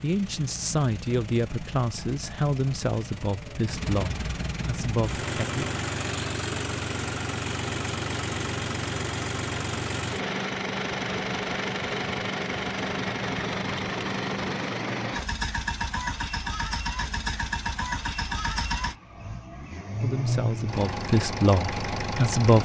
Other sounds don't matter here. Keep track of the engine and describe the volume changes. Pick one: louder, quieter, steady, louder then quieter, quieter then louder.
louder.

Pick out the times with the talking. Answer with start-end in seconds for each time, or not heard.
0.0-5.7, 20.0-22.6.